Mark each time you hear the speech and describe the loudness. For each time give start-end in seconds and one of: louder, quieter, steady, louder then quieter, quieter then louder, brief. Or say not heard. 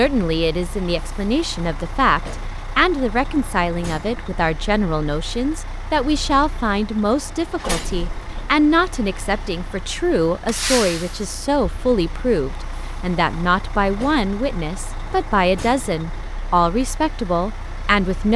0.0-18.3 steady.